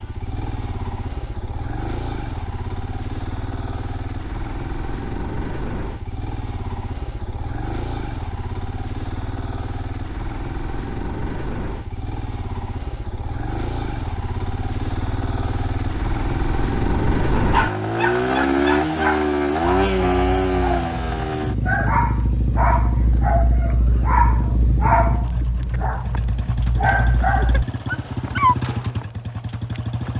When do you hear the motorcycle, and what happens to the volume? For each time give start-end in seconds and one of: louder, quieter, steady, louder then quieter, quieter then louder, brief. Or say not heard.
0.0-30.1 louder then quieter.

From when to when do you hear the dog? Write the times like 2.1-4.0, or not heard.
17.4-28.6.